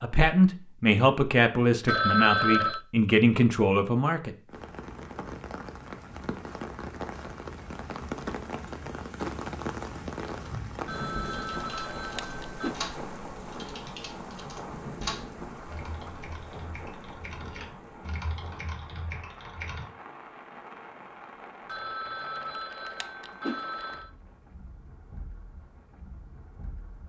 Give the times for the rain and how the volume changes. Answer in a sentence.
The rain can be heard from 4.5 to 27.0 s, getting quieter.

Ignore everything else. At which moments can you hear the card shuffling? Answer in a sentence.
You can't hear the card shuffling here.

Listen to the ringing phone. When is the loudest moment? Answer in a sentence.
The volume of the ringing phone peaks at 2 seconds.